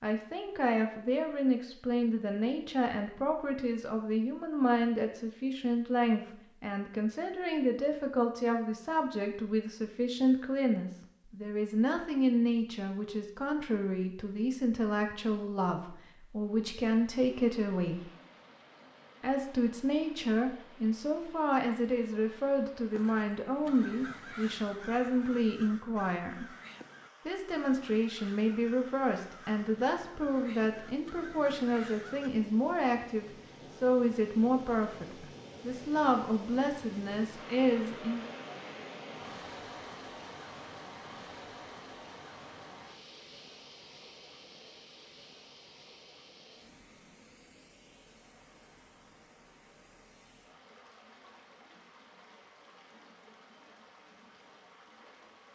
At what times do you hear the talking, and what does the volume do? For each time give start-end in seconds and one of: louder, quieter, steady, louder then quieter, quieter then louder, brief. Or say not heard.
0.0-18.1 steady
19.2-26.4 steady
27.2-38.3 steady.